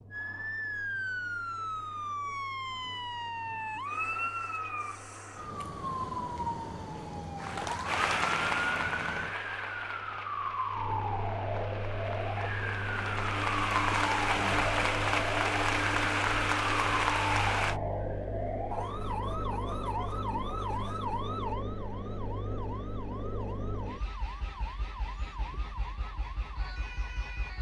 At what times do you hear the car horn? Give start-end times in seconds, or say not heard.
not heard.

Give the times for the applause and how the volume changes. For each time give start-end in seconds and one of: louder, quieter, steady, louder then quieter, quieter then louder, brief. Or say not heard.
7.3-17.8 quieter then louder.